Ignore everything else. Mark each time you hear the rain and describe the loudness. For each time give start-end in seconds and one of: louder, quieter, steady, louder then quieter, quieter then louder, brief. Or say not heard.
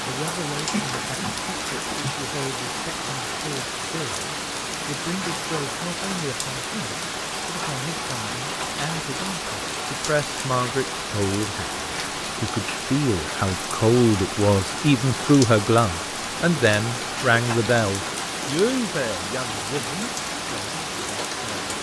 0.0-21.7 steady.